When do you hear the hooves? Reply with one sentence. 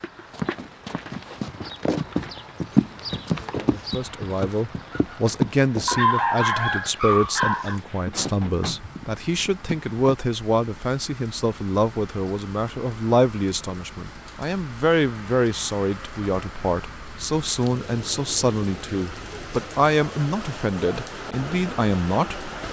The hooves can be heard from 0.0 to 9.9 s.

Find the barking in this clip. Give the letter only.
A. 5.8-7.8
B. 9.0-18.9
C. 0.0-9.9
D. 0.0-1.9
A.